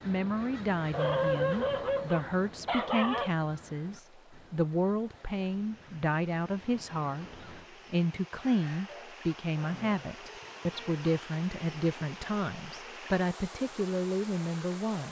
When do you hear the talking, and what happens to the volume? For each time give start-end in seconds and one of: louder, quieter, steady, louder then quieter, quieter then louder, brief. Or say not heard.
0.1-15.0 steady.